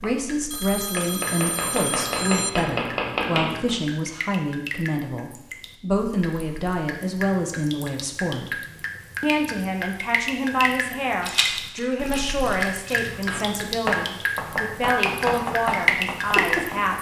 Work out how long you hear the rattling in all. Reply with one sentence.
You can hear the rattling for 2 seconds altogether.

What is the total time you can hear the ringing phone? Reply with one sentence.
You can hear the ringing phone for 2 seconds altogether.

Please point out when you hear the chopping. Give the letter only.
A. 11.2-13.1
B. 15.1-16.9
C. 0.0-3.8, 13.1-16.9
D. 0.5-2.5
C.